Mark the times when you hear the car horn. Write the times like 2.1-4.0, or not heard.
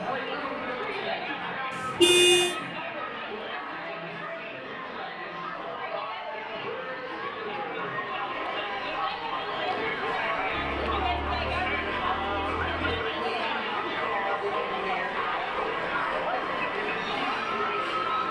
1.3-2.5.